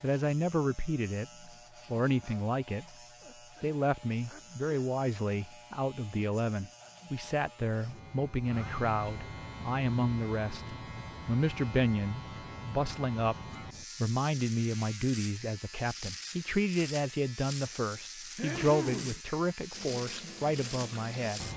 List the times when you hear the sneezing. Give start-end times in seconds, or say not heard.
3.2-4.7, 8.4-8.8, 18.4-19.2.